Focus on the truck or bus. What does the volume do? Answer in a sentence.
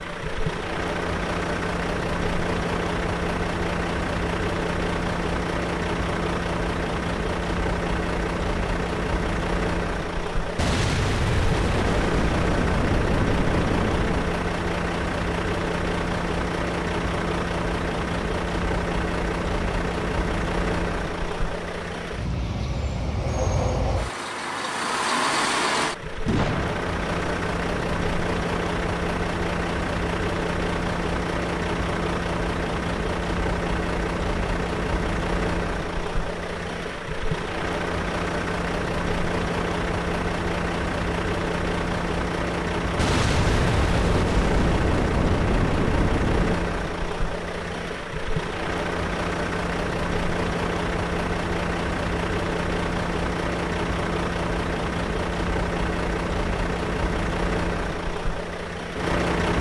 The loudness of the truck or bus stays about the same.